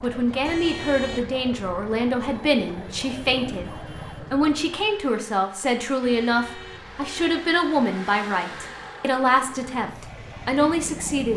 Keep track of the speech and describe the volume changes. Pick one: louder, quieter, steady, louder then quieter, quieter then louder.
steady.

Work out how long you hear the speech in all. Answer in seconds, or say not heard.
11 s.